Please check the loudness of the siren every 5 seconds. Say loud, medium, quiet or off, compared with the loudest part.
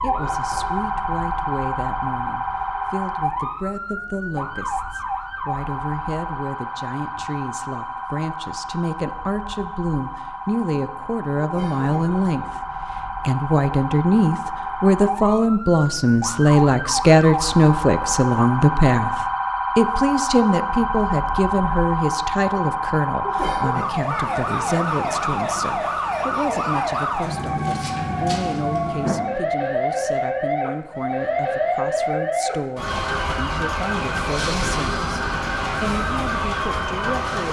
loud, medium, medium, loud, loud, loud, loud, loud.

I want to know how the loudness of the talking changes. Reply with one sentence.
The loudness of the talking goes up, then down.